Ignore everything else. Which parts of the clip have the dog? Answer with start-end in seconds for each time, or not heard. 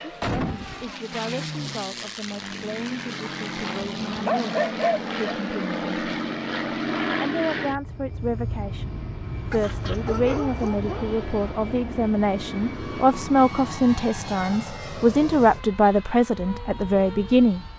3.8-5.3, 9.5-11.1.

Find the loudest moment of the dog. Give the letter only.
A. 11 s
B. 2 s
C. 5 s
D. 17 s
C.